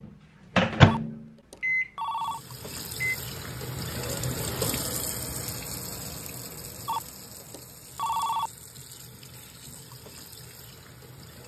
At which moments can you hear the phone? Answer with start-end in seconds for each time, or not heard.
0.8-2.4, 6.8-8.5.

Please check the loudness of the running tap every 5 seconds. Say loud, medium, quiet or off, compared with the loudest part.
loud, medium, quiet.